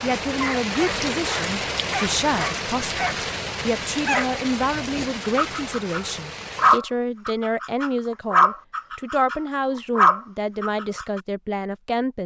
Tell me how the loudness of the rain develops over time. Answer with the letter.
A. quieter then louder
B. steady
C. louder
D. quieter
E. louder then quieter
D.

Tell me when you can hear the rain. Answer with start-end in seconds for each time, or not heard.
0.0-6.8.